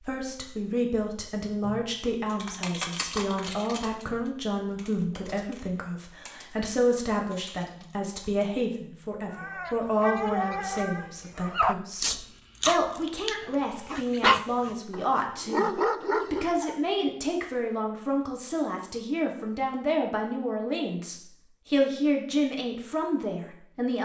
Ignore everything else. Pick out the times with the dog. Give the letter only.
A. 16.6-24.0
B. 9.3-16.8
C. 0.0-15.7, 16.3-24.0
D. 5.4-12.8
B.